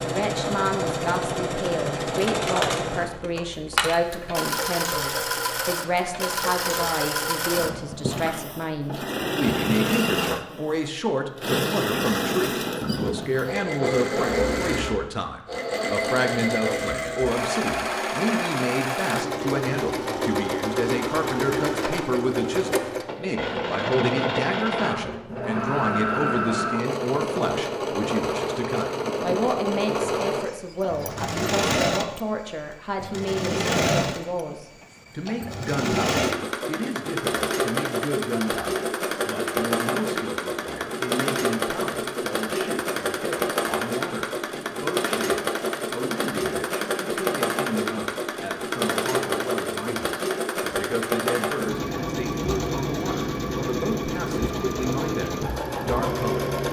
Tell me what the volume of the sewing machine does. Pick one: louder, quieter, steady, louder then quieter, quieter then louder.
steady.